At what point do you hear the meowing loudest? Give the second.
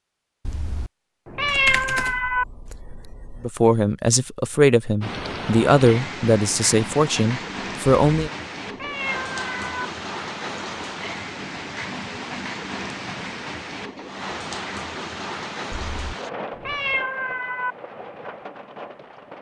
2 s.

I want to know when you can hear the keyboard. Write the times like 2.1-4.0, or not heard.
1.4-3.5.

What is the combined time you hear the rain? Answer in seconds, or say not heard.
14 s.